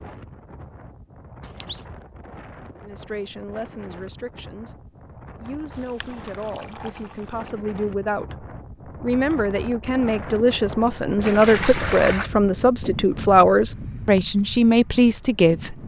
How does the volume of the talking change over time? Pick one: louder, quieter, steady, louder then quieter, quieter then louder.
louder.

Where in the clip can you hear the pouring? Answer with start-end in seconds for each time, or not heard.
1.4-1.9, 5.7-7.5, 11.2-12.3.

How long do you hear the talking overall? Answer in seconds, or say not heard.
13 s.